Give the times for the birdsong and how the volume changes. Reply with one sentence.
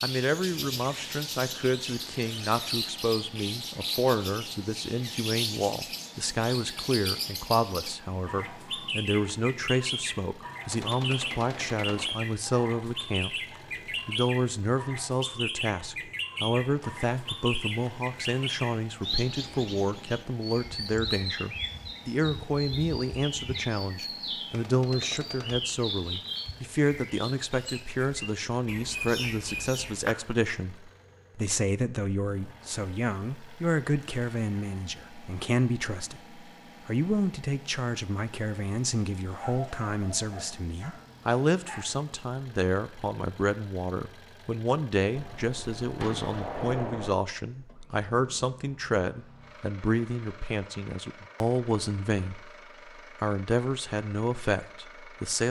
You can hear the birdsong from 0.0 to 30.1 s, at a steady volume.